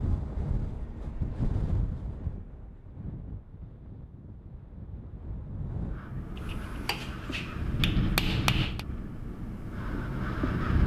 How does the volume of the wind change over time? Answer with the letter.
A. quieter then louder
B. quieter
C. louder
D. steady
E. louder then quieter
A.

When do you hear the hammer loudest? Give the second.
8 s.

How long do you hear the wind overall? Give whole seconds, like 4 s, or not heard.
11 s.